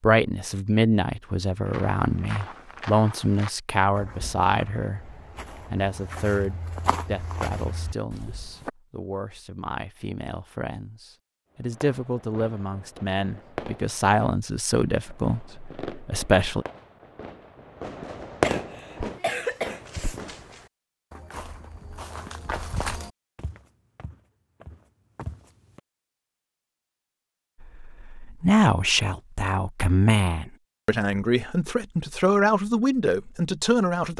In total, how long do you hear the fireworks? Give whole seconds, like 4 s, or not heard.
9 s.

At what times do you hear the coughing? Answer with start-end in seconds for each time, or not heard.
18.4-20.2.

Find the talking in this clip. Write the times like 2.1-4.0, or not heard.
0.0-16.6, 27.6-34.1.